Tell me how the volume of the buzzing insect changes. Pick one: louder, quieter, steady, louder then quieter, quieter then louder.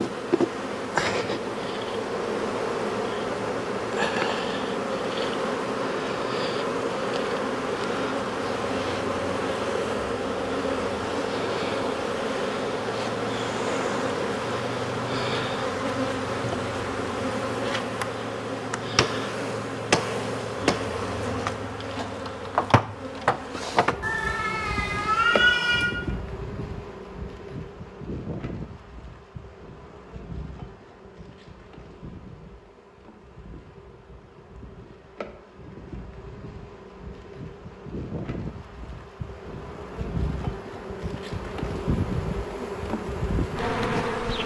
quieter then louder.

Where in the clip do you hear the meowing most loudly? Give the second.
25 s.